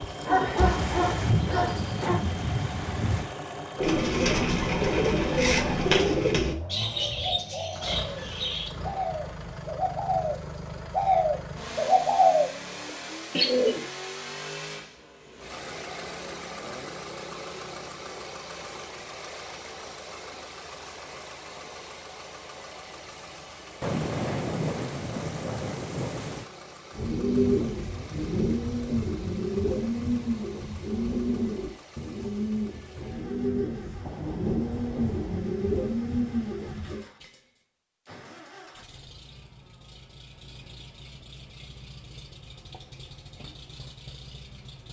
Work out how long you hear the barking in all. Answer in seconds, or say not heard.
2 s.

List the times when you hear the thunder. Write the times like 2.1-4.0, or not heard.
0.6-3.4, 23.8-26.4, 34.0-35.4.